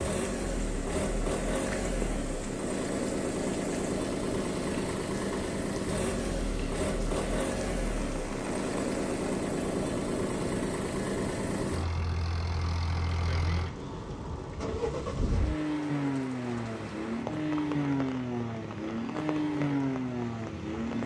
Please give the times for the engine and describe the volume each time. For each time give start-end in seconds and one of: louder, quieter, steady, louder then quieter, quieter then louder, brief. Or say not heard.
0.0-21.0 steady.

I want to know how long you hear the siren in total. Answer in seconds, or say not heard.
not heard.